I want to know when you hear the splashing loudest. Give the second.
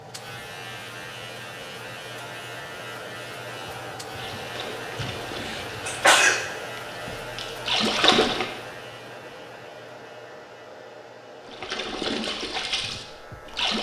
8 s.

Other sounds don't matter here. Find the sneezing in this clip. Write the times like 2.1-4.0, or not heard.
5.0-6.5.